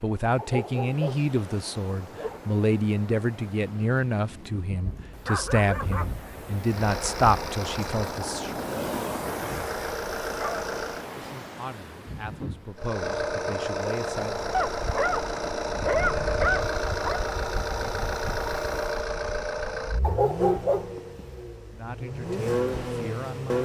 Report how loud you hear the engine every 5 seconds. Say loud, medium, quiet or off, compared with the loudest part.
off, medium, loud, loud, loud.